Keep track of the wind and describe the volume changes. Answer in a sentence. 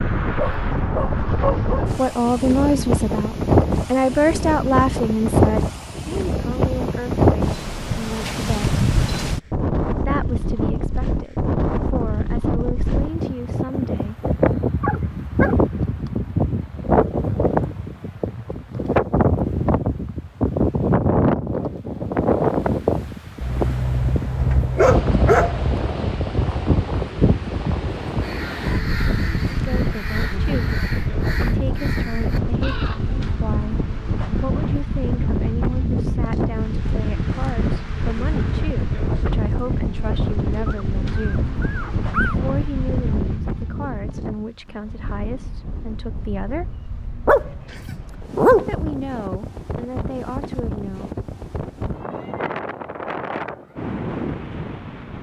The loudness of the wind goes down.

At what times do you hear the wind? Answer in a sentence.
You can hear the wind from 0.0 to 55.1 s.